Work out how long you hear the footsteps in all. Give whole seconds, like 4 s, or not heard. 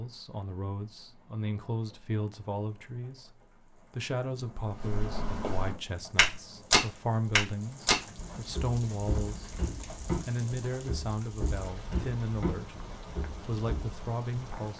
9 s.